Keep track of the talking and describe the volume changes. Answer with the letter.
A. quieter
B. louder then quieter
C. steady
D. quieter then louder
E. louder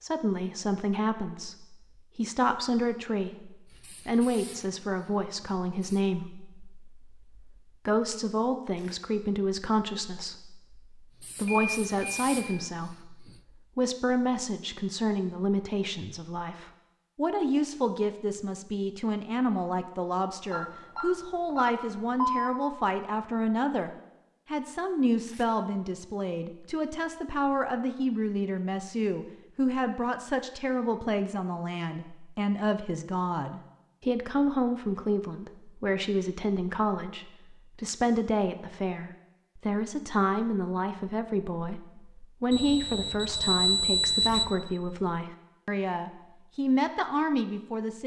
C.